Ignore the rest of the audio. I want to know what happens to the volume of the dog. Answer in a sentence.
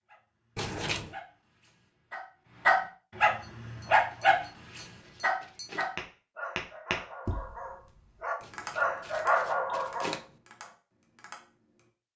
The volume of the dog goes down, then up.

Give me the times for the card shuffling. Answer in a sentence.
You can hear the card shuffling from 0.6 to 1.1 s, from 4.1 to 6.0 s and from 8.4 to 10.2 s.